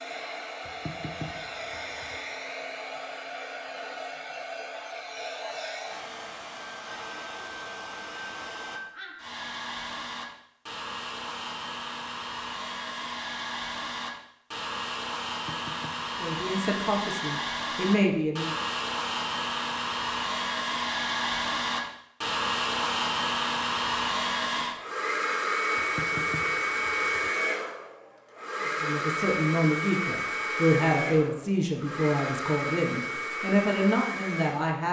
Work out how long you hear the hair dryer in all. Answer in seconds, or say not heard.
35 s.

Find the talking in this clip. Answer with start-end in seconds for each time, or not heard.
16.2-18.5, 28.6-34.8.